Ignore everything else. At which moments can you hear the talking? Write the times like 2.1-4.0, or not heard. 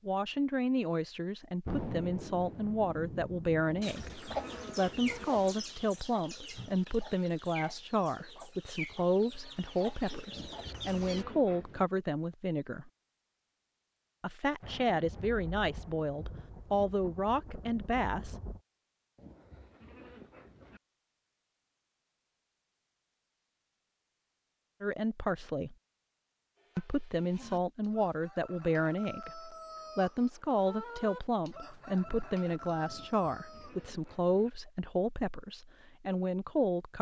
0.1-12.9, 14.2-18.4, 24.8-25.8, 26.8-36.9.